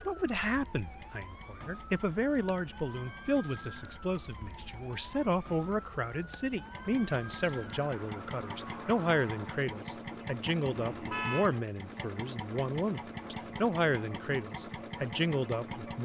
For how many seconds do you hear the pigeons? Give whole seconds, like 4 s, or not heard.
not heard.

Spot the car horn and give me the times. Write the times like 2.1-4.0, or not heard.
10.7-11.5.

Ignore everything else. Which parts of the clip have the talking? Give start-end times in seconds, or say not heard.
0.0-15.9.